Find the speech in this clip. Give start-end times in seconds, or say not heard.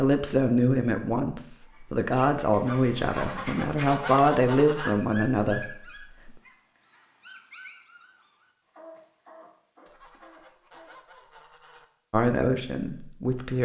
0.0-6.3, 12.1-13.5.